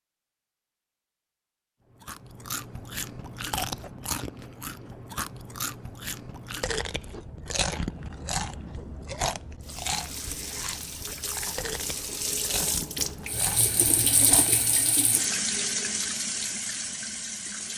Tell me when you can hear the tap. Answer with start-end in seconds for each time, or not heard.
9.6-17.7.